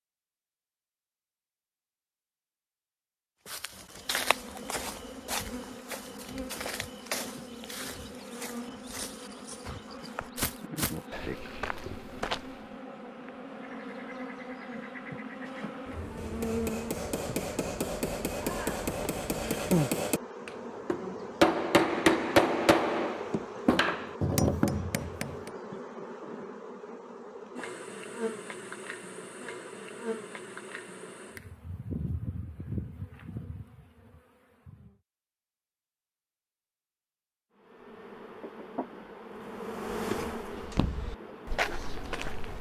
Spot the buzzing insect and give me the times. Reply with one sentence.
You can hear the buzzing insect from 4.0 to 35.0 s and from 37.5 to 42.5 s.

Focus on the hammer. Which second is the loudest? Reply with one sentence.
The volume of the hammer peaks at 22 seconds.